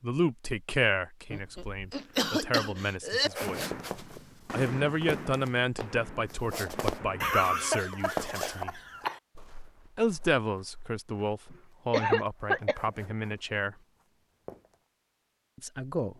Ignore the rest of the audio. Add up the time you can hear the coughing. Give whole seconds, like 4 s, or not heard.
5 s.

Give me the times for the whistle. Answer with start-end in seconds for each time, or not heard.
not heard.